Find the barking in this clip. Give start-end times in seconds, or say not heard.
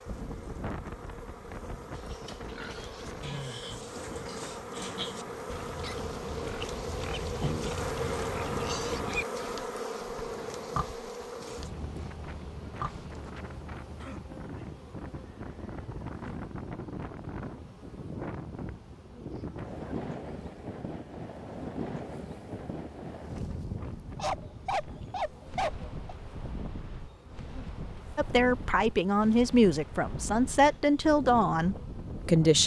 24.1-25.9.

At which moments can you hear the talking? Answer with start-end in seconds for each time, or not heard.
28.1-32.6.